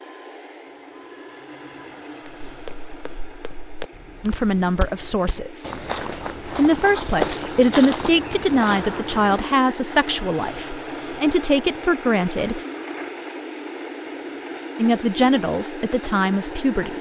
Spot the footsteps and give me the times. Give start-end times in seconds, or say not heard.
2.5-9.5.